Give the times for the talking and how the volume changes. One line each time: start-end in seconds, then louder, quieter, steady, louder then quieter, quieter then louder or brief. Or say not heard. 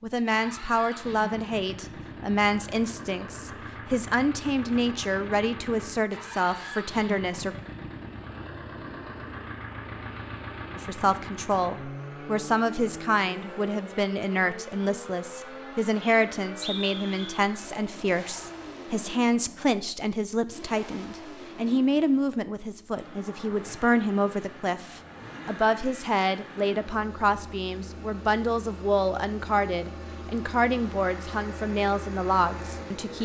0.0-7.5 steady
10.8-33.2 steady.